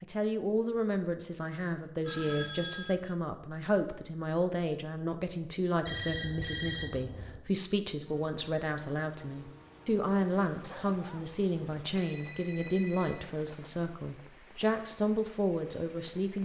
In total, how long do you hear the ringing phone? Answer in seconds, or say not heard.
4 s.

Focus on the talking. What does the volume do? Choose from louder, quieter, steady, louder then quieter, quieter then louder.
steady.